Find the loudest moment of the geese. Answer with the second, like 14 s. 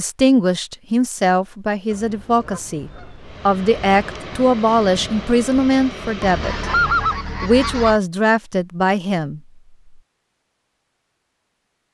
7 s.